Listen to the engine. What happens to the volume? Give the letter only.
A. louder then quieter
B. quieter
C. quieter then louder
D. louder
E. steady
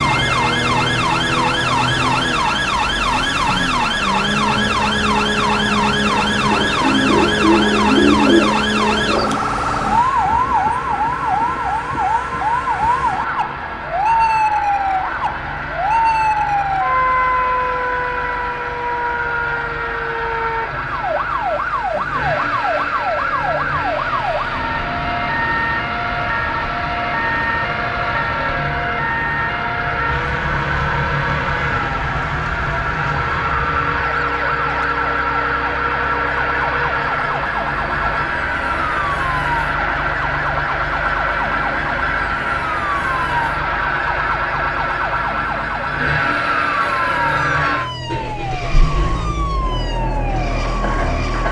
D.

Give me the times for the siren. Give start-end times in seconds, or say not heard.
0.0-51.4.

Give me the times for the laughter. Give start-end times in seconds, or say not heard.
not heard.